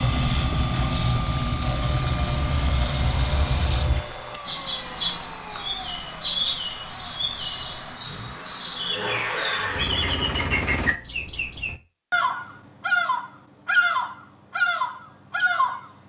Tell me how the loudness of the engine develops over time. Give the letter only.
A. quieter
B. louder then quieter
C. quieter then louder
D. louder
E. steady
C.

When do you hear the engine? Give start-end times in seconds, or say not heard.
0.0-10.9.